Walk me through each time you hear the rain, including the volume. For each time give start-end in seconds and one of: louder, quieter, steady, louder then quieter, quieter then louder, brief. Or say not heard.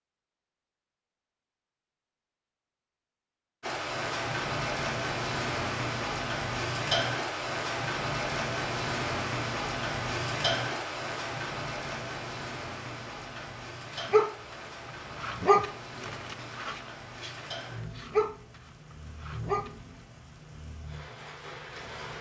3.6-22.1 quieter.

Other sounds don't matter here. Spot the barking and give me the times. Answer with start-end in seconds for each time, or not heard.
13.3-14.6, 15.2-18.4, 19.2-19.7.